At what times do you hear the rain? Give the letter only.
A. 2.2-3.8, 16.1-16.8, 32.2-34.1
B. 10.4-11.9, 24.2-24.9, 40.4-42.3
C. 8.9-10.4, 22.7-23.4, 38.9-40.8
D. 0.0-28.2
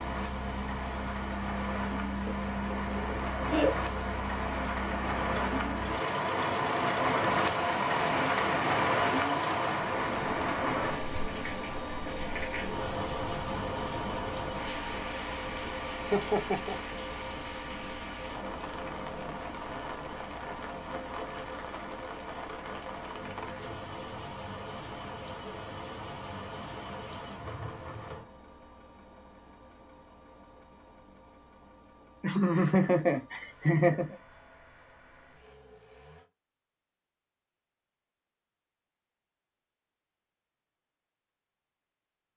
D.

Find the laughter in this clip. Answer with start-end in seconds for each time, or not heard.
2.2-3.8, 16.1-16.8, 32.2-34.1.